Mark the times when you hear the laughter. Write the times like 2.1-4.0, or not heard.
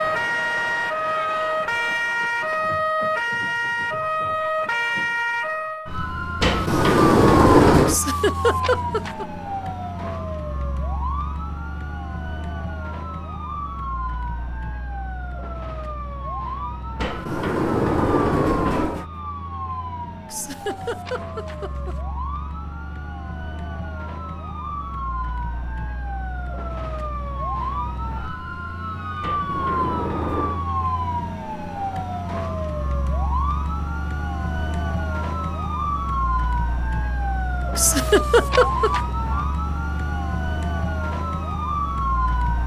7.8-9.2, 20.3-21.9, 37.8-39.0.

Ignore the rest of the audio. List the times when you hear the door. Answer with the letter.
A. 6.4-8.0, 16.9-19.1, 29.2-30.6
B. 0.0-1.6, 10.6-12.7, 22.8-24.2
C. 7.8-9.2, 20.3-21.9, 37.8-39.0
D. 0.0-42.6
A.